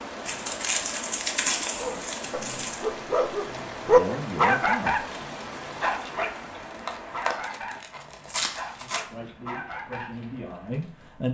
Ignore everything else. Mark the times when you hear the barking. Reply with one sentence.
The barking can be heard from 1.7 to 10.2 s.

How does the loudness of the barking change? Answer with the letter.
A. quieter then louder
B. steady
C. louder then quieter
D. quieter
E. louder
C.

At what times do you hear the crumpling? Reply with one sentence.
You can hear the crumpling from 0.2 to 2.9 s and from 6.7 to 9.1 s.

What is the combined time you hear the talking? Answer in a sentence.
You can hear the talking for 4 seconds altogether.